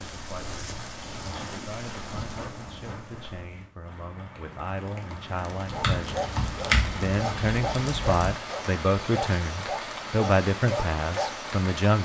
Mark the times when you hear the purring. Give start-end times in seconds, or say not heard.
not heard.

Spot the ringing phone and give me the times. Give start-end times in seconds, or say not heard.
not heard.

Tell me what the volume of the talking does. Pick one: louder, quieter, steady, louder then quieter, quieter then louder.
louder.